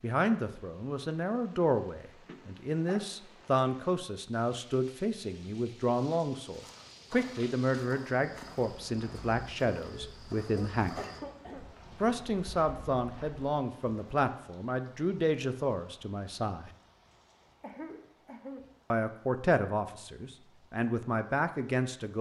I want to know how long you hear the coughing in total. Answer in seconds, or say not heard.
4 s.